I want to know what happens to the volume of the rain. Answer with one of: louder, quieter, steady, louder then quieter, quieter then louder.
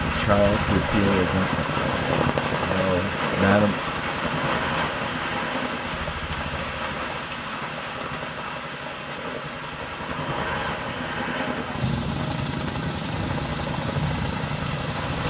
quieter.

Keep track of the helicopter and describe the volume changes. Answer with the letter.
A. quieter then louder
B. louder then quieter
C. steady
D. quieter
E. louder
A.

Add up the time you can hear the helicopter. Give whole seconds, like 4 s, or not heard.
15 s.